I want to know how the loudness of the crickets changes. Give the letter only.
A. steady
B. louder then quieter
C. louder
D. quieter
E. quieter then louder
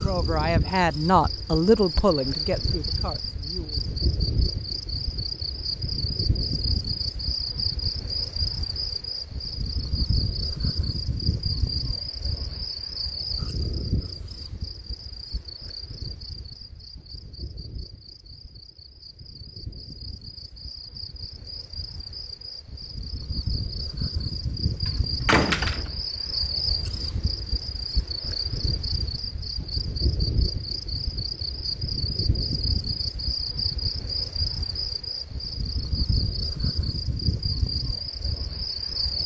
E.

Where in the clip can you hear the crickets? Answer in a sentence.
The crickets can be heard from 0.0 to 39.2 s.